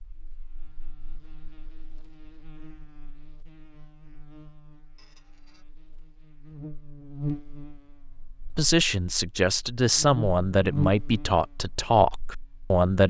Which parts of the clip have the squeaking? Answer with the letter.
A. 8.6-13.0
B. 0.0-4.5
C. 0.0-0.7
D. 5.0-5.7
D.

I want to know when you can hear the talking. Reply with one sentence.
You can hear the talking from 8.6 to 13.0 s.